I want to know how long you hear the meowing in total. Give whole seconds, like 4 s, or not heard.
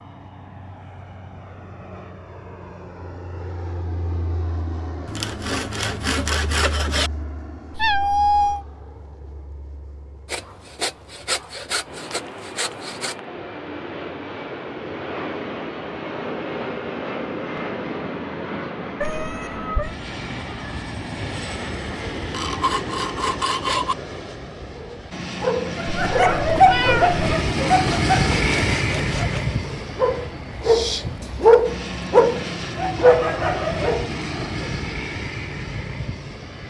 3 s.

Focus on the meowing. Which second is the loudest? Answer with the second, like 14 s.
8 s.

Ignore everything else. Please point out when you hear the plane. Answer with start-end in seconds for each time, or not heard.
0.0-36.6.